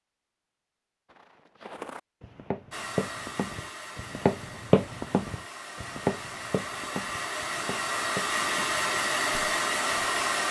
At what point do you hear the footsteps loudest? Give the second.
5 s.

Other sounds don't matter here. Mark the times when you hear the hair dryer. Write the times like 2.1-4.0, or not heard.
2.7-10.4.